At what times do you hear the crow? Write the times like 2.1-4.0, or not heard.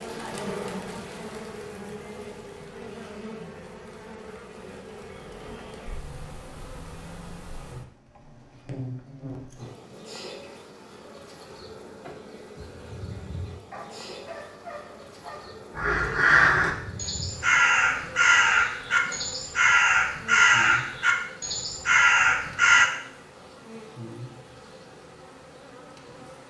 15.8-22.9.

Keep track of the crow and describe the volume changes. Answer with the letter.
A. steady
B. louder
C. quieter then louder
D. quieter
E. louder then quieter
A.